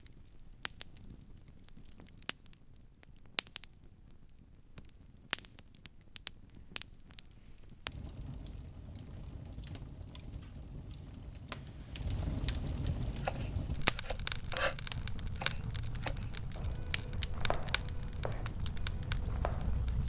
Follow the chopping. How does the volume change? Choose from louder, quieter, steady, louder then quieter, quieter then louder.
quieter.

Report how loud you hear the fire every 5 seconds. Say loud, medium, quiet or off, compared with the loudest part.
quiet, medium, loud, loud.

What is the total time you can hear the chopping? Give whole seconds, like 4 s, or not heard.
7 s.